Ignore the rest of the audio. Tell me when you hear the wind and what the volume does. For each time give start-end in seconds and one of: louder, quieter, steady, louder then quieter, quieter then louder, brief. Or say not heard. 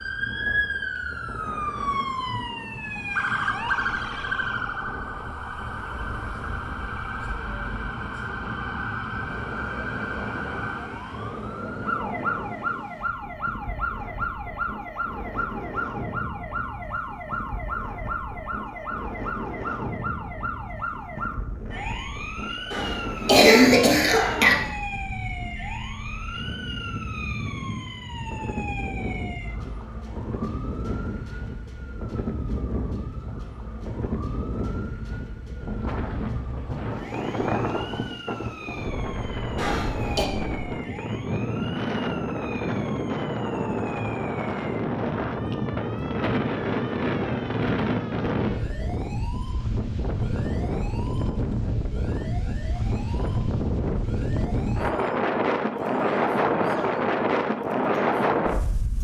0.0-58.9 louder.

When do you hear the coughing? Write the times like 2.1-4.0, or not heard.
22.7-24.6, 39.5-40.2.